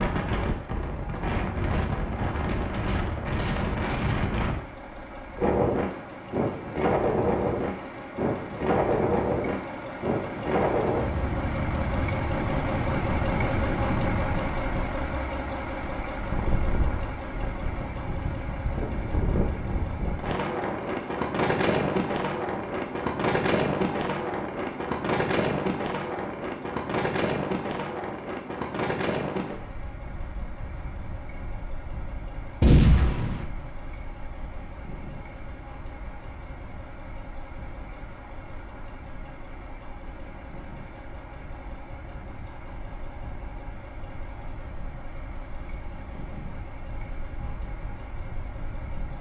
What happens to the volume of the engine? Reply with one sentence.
The volume of the engine goes up, then down.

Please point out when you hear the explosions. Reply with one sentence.
You can hear the explosions from 32.6 to 33.5 s.